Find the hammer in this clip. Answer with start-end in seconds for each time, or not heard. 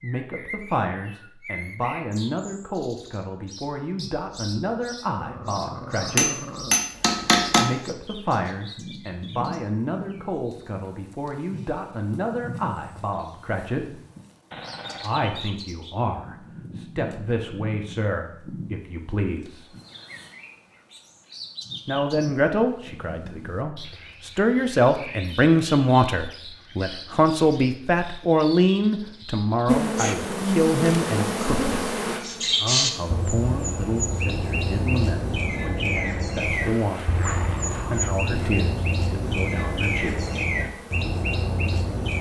6.0-7.7.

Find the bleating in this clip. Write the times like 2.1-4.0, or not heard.
not heard.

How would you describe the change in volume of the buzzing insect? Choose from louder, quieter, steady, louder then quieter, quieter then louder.
quieter.